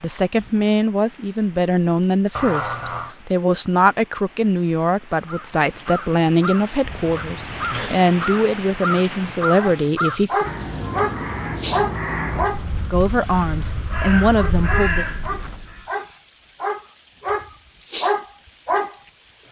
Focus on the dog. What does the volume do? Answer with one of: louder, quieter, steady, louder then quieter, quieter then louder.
quieter then louder.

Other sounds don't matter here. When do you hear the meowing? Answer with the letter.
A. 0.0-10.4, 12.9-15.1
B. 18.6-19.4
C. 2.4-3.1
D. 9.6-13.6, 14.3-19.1
C.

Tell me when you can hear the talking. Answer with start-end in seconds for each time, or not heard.
0.0-10.4, 12.9-15.1.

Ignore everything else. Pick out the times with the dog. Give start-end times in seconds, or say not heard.
9.6-13.6, 14.3-19.1.